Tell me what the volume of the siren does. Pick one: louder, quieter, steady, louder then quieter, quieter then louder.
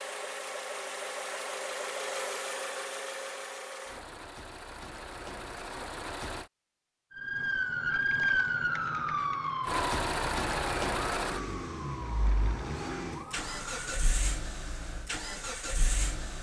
quieter.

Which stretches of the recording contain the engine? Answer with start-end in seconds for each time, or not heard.
0.0-6.5, 9.7-16.3.